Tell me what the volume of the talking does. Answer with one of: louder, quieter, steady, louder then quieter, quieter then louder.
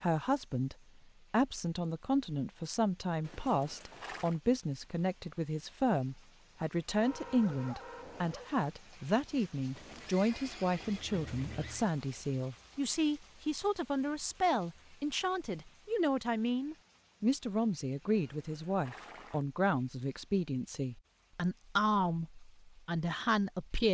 steady.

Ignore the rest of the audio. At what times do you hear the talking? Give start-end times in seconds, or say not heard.
0.0-23.8.